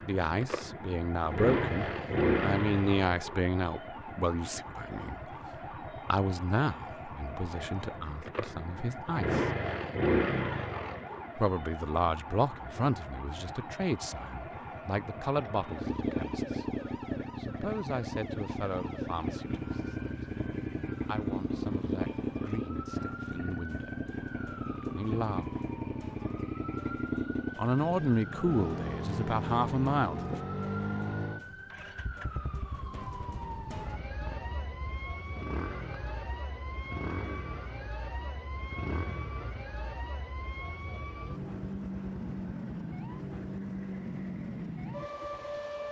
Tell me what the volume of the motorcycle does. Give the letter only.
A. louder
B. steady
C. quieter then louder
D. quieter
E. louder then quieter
D.